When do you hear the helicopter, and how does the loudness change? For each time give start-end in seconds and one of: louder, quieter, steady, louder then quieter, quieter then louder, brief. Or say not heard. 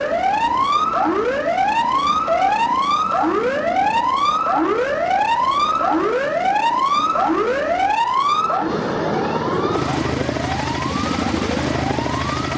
0.0-12.5 louder.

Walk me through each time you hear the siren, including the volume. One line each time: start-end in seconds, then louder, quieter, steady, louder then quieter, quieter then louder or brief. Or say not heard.
0.0-12.5 quieter.